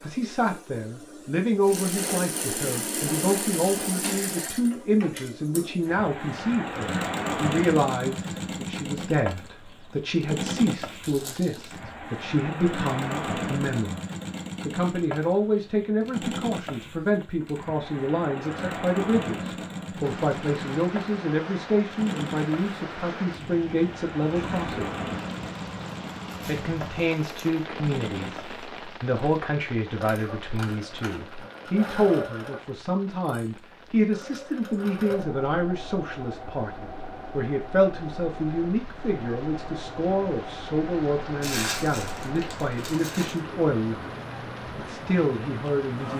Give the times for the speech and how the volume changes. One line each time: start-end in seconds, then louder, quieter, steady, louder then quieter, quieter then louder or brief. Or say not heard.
0.0-14.0 steady
14.7-24.9 steady
26.4-44.1 steady
44.8-46.1 brief.